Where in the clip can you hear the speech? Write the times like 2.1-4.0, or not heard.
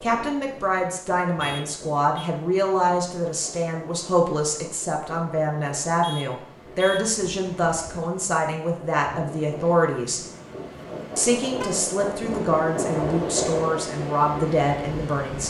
0.0-10.2, 11.2-15.4.